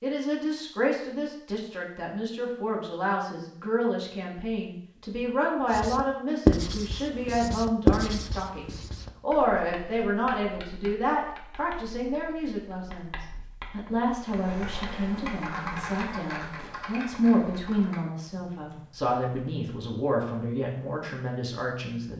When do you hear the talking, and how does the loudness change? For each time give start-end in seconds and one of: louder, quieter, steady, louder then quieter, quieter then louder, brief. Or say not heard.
0.0-22.1 steady.